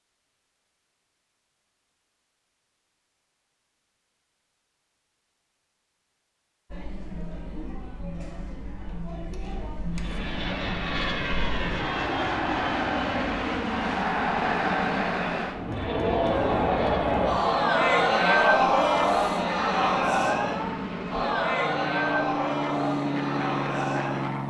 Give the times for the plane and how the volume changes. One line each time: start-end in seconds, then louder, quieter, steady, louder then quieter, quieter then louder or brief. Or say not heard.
9.9-24.4 quieter then louder.